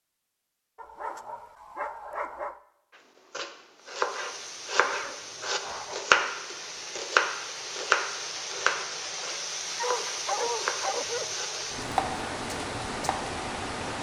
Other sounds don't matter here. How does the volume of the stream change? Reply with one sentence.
The loudness of the stream goes up.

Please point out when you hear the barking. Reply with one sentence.
The barking can be heard from 0.8 to 2.5 s, from 4.7 to 6.2 s and from 9.8 to 11.3 s.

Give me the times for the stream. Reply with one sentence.
You can hear the stream from 3.8 to 13.9 s.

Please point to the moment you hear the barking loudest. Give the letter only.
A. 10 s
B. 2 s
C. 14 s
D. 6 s
A.